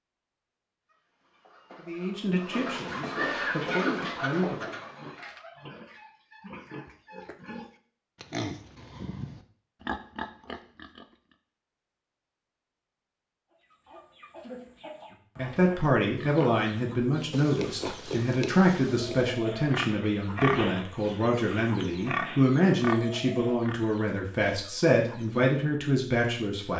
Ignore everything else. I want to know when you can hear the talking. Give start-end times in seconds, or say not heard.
1.8-4.7, 15.3-26.7.